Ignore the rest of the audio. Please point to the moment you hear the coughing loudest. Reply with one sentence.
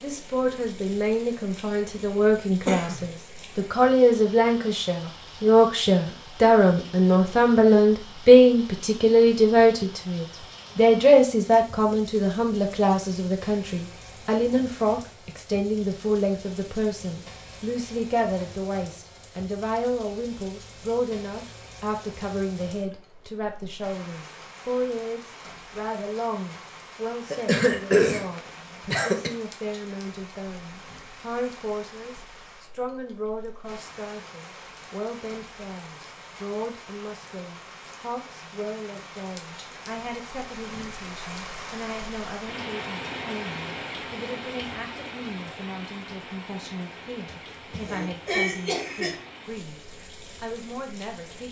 The volume of the coughing peaks at 28 seconds.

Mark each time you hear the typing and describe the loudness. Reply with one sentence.
The typing can't be heard in this clip.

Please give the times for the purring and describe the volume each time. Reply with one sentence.
The purring can't be heard in this clip.